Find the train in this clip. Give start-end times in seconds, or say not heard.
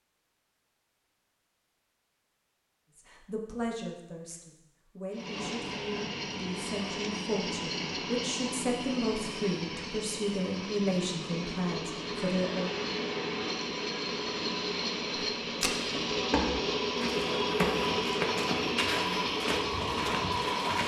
5.1-20.8.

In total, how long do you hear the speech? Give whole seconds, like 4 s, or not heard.
10 s.